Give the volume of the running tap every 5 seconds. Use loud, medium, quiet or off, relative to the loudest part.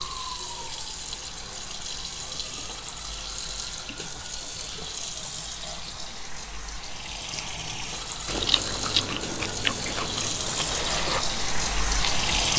medium, medium, loud.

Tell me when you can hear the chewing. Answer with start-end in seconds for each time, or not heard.
8.2-12.3.